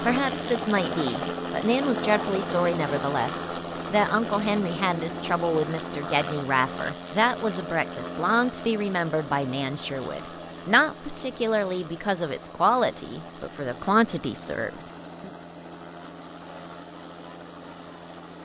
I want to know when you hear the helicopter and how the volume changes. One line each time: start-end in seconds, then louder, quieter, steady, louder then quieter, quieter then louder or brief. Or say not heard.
0.0-18.4 quieter.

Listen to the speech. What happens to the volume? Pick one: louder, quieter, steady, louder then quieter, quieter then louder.
steady.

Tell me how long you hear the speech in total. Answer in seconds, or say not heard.
15 s.